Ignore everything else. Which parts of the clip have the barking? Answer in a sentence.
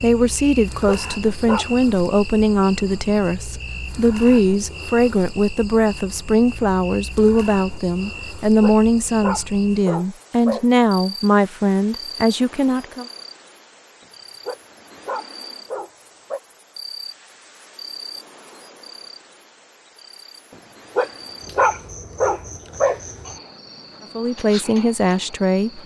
The barking can be heard from 0.8 to 1.7 s, from 8.6 to 10.7 s, from 14.4 to 16.4 s and from 20.9 to 23.0 s.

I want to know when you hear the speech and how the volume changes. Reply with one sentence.
You can hear the speech from 0.0 to 13.1 s, at a steady volume; and briefly from 24.1 to 25.8 s.